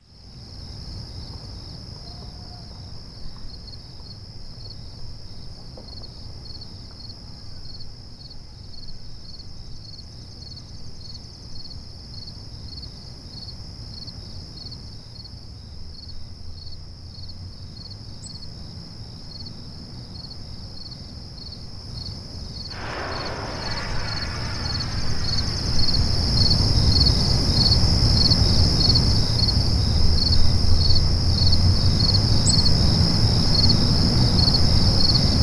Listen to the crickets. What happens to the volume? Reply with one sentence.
The loudness of the crickets goes up.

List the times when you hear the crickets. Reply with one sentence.
The crickets can be heard from 0.0 to 35.3 s.